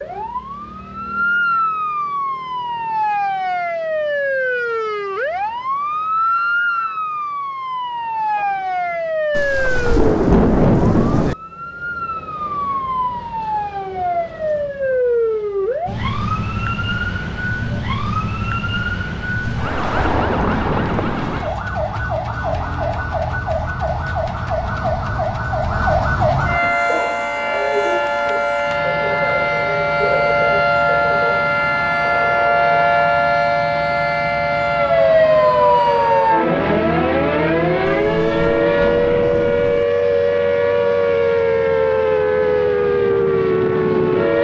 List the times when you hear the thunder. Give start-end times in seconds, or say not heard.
9.3-11.3, 19.4-21.4, 37.9-39.9.